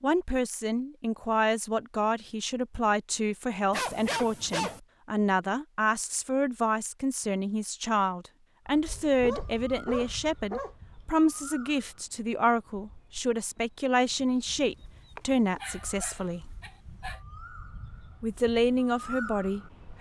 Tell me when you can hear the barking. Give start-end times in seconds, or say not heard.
3.7-4.8, 8.8-10.8, 14.4-17.2.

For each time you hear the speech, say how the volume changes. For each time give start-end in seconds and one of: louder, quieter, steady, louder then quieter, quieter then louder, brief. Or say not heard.
0.0-16.6 steady
18.2-19.9 brief.